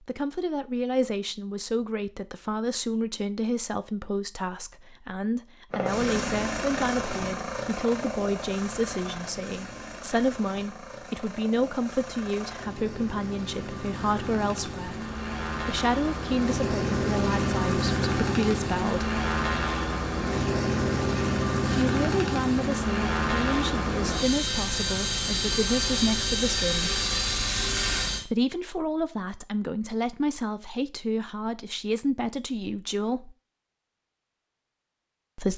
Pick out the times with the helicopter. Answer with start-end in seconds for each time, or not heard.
5.7-28.2.